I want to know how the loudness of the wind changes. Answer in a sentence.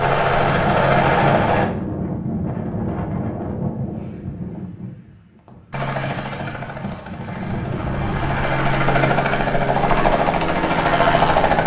The loudness of the wind goes down, then up.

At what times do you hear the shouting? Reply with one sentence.
You can't hear the shouting here.